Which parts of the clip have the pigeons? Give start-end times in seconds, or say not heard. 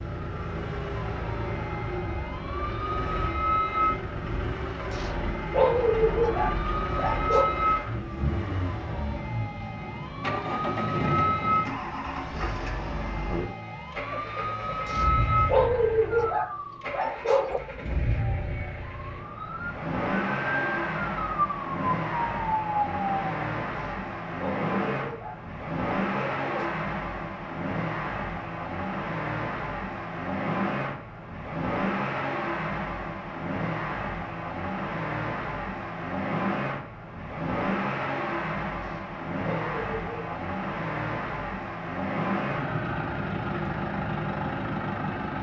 not heard.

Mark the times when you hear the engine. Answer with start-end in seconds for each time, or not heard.
0.0-45.3.